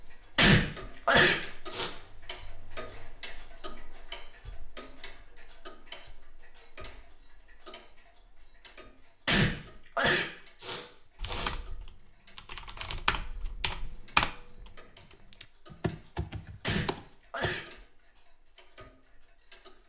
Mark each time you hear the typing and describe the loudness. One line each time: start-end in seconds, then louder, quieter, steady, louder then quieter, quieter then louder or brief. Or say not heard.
11.2-17.6 louder then quieter.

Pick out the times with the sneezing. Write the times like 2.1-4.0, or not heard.
0.3-1.9, 9.2-11.6, 16.6-17.6.